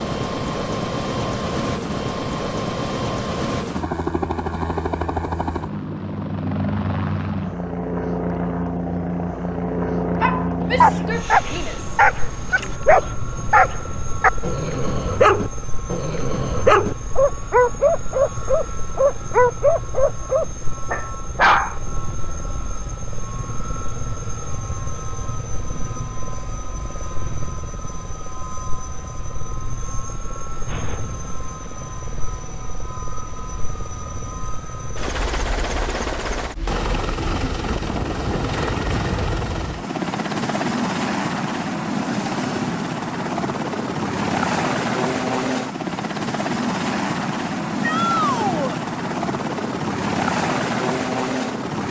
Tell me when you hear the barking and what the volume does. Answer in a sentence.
You can hear the barking from 10.2 to 21.8 s, at a steady volume.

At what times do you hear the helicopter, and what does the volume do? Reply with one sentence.
The helicopter can be heard from 0.0 to 51.8 s, getting quieter then louder.